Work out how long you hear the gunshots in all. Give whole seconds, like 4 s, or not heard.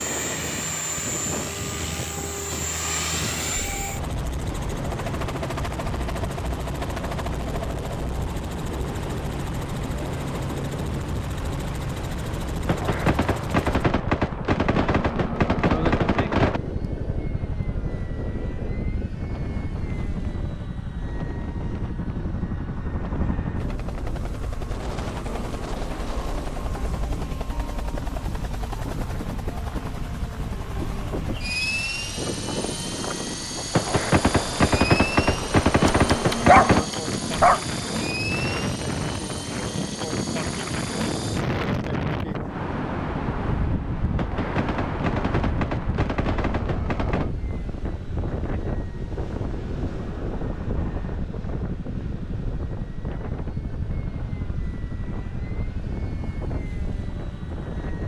10 s.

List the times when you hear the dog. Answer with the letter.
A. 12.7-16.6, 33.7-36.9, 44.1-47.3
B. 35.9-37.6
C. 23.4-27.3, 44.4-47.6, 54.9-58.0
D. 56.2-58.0
B.